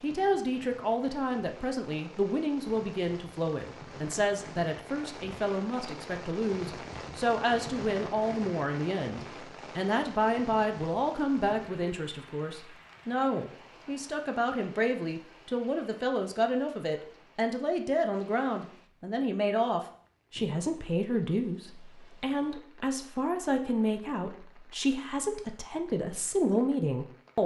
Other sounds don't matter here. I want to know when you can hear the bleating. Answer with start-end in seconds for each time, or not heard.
not heard.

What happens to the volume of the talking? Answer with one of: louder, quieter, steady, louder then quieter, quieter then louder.
steady.